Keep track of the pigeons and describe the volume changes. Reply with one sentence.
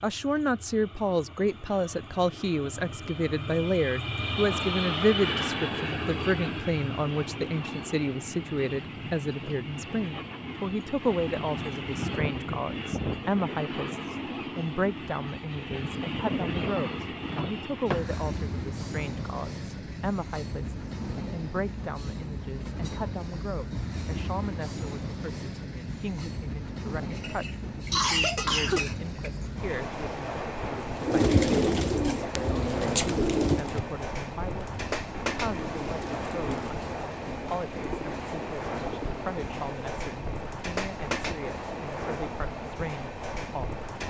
The loudness of the pigeons goes down.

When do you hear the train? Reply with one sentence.
You can hear the train from 0.0 to 44.0 s.